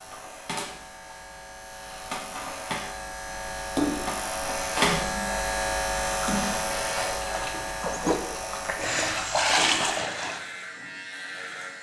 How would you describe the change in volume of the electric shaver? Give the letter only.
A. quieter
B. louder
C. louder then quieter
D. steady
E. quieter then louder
C.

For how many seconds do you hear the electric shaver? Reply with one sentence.
You can hear the electric shaver for 12 seconds altogether.